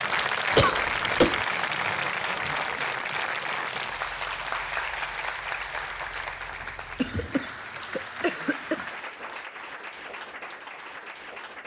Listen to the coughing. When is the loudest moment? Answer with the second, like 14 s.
1 s.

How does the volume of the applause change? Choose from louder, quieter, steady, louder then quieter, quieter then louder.
quieter.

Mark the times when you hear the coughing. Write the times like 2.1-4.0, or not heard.
0.6-1.4, 7.0-8.8.